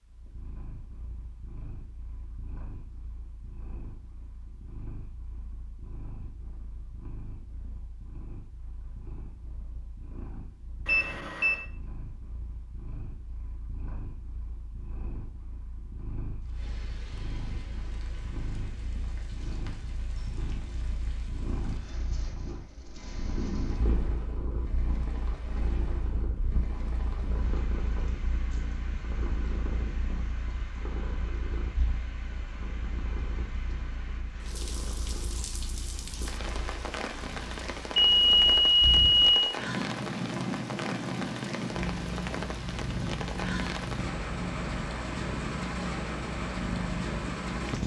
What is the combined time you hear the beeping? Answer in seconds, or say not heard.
2 s.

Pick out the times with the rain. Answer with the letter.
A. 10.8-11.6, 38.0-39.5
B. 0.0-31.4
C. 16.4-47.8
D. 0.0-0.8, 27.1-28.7
C.